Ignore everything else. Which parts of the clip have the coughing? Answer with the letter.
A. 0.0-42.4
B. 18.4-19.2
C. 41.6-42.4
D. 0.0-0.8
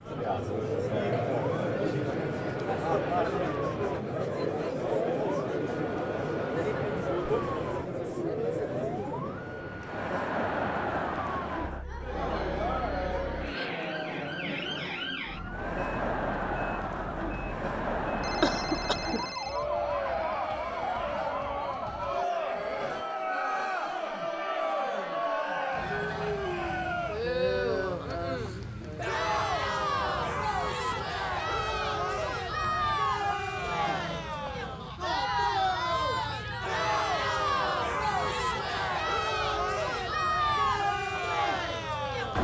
B.